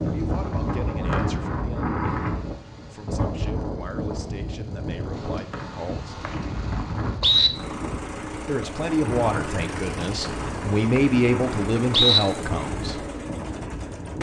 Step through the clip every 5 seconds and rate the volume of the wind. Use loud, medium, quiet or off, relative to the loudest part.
loud, medium, medium.